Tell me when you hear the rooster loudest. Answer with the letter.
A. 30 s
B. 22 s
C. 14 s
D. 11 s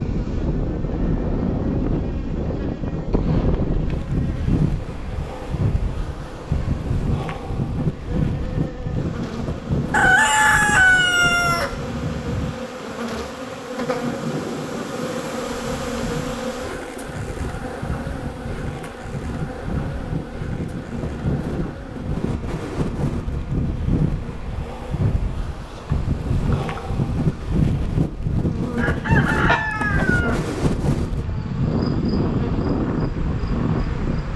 D.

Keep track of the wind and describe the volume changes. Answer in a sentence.
The volume of the wind goes down, then up.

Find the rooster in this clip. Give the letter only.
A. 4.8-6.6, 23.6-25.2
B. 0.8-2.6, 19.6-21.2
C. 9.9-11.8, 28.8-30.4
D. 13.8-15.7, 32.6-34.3
C.